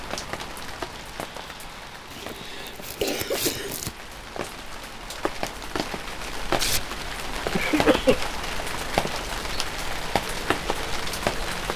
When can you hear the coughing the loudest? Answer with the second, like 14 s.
8 s.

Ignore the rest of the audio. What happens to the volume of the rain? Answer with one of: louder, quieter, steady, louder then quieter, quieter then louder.
louder.